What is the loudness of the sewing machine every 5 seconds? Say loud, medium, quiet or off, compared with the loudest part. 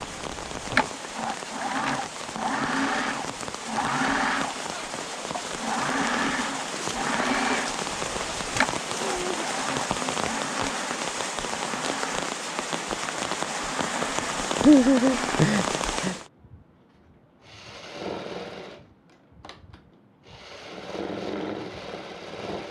loud, loud, medium, medium, medium.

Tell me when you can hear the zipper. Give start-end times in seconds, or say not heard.
not heard.